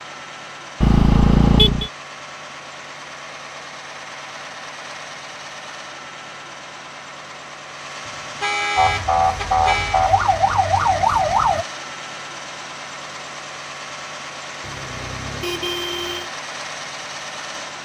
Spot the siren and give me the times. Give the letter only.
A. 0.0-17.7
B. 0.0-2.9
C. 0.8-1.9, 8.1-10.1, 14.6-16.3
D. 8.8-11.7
D.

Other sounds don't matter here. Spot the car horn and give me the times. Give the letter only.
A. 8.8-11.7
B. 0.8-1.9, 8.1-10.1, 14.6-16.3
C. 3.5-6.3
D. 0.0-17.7
B.